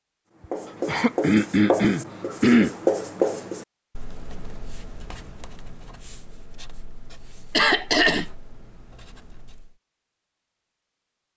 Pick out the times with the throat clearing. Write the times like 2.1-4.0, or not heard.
0.8-2.7, 7.5-8.2.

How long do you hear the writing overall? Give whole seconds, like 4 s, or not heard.
9 s.